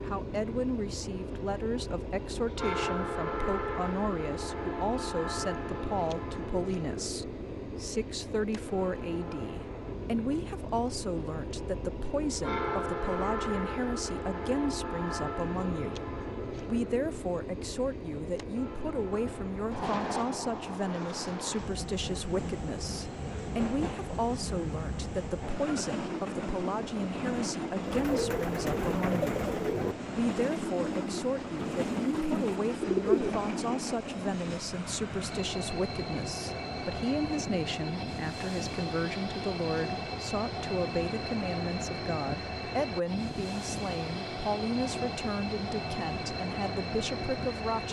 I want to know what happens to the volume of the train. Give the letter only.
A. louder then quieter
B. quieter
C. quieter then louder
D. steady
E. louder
D.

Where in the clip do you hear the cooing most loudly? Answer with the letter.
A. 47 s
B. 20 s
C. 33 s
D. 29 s
C.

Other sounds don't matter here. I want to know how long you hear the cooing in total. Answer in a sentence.
The cooing can be heard for 6 seconds in total.